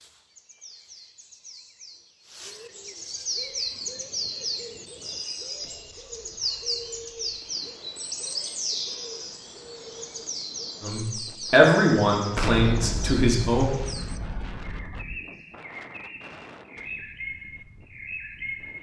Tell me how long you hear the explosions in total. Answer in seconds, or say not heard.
3 s.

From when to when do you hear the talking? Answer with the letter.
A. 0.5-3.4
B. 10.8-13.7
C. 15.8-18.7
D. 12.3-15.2
B.